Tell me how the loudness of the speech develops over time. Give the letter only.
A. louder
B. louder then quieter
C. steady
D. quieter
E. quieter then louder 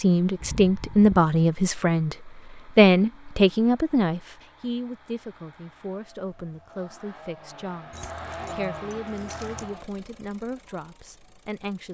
D.